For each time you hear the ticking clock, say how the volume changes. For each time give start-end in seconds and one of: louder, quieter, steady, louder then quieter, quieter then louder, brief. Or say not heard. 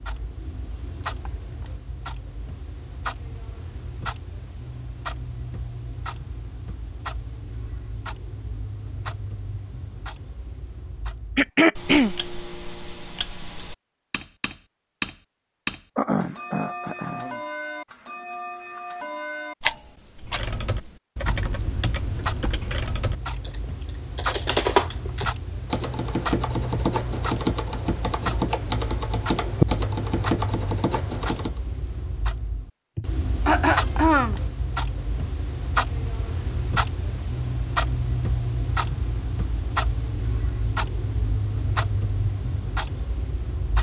0.0-43.7 louder.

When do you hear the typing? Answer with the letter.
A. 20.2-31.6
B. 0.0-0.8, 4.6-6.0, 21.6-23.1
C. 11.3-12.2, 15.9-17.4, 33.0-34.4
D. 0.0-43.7
A.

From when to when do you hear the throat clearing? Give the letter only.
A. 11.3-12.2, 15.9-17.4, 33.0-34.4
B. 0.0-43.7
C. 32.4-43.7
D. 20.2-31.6
A.